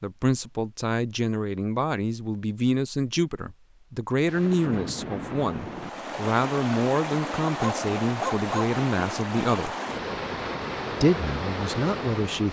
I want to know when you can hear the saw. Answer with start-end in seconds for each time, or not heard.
not heard.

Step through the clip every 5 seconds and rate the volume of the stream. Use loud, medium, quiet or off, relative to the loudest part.
off, loud, loud.